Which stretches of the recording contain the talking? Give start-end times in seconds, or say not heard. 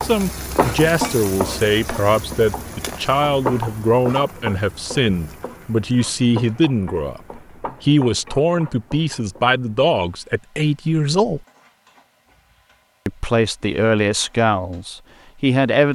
0.0-11.4, 13.1-15.9.